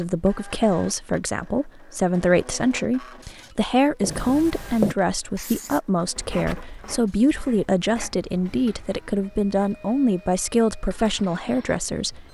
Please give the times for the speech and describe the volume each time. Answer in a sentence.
You can hear the speech from 0.0 to 12.3 s, at a steady volume.